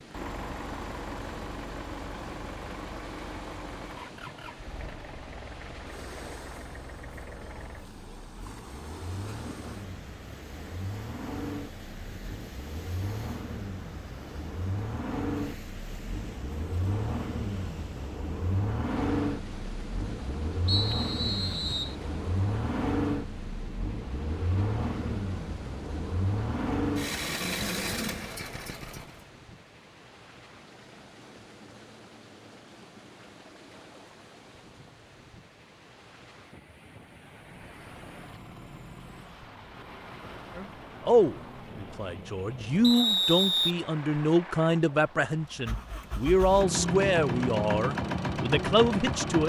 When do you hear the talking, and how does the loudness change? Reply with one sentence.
The talking can be heard from 40.5 to 49.4 s, at a steady volume.